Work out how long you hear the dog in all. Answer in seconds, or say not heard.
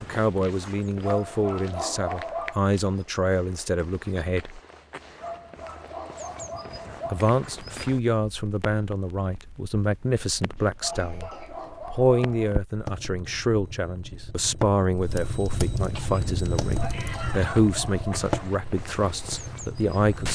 7 s.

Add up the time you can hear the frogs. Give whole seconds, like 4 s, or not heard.
not heard.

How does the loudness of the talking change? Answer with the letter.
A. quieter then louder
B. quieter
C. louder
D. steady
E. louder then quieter
D.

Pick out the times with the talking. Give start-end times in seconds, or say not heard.
0.0-4.6, 7.1-20.3.